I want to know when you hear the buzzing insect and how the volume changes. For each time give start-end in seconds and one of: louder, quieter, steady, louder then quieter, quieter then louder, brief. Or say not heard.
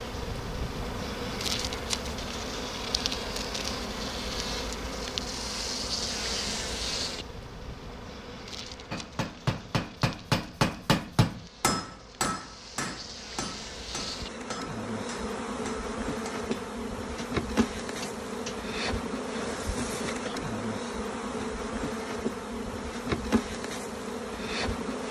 0.0-25.0 quieter then louder.